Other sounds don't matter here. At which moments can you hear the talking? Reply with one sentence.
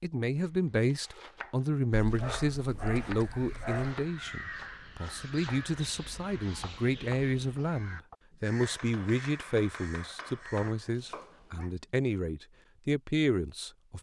The talking can be heard from 0.0 to 13.9 s.